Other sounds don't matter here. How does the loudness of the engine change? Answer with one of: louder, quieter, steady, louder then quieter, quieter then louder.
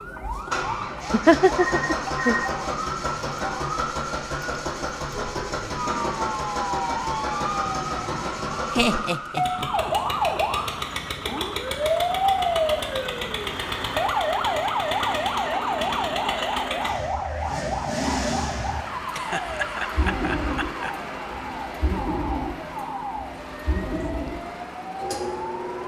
steady.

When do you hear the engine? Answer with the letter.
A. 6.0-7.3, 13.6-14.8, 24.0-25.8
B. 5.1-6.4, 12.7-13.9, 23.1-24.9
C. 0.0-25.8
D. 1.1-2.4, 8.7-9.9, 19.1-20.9
C.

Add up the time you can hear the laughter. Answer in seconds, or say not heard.
4 s.